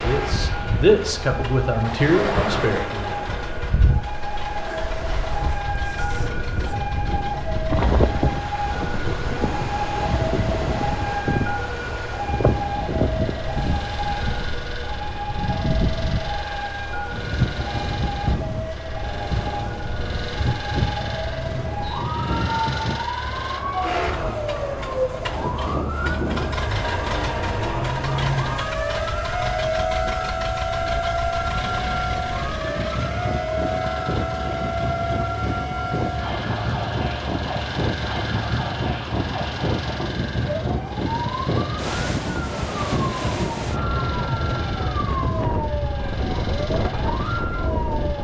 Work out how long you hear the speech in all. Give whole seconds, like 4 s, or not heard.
3 s.